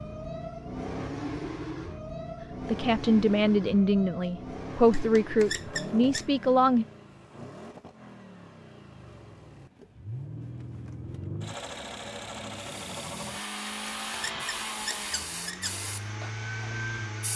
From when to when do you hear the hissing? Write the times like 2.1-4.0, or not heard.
12.7-17.3.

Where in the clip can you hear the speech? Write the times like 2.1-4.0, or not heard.
2.6-6.8.